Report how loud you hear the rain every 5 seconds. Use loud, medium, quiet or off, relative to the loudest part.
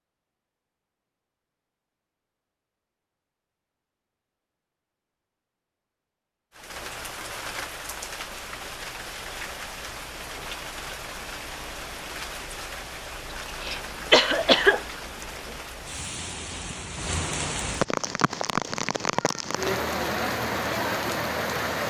off, medium, medium, loud, loud.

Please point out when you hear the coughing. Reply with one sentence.
You can hear the coughing from 13.6 to 15.2 s.